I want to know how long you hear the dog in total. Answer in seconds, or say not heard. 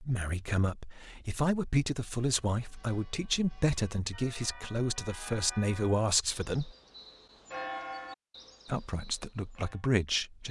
not heard.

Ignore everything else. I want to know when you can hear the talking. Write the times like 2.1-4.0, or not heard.
0.0-6.7, 8.7-10.4.